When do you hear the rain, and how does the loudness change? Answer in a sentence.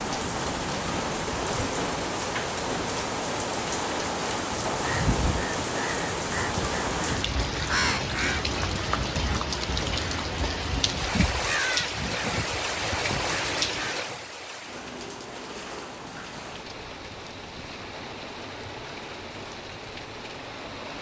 The rain can be heard from 0.0 to 20.9 s, getting quieter.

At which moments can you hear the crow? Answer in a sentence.
The crow can be heard from 4.7 to 14.0 s.